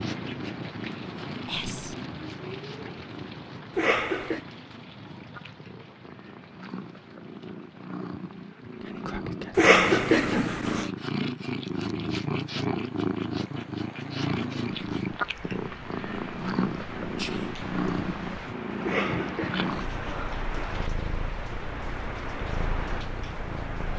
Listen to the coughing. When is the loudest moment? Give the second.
10 s.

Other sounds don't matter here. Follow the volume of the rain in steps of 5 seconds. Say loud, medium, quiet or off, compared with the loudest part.
loud, quiet, medium, loud, loud.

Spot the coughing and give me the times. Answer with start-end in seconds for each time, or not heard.
3.8-4.4, 9.6-10.9, 18.8-20.2.